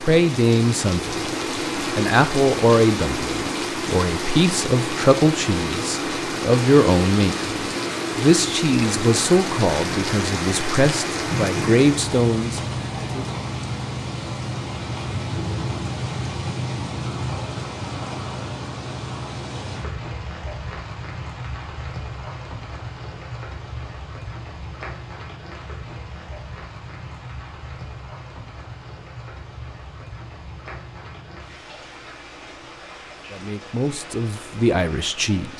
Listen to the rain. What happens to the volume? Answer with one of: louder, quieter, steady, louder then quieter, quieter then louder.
quieter.